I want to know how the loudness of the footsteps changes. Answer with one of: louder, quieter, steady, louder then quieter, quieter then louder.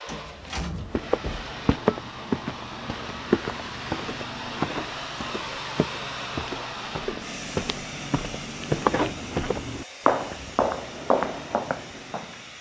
quieter then louder.